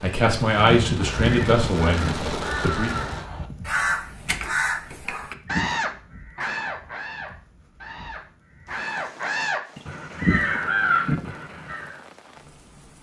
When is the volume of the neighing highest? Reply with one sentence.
The loudest moment of the neighing is at 10 seconds.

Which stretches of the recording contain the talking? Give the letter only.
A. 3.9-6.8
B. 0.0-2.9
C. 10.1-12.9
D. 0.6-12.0
B.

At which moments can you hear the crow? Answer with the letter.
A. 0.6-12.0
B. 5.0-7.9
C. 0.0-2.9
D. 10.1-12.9
A.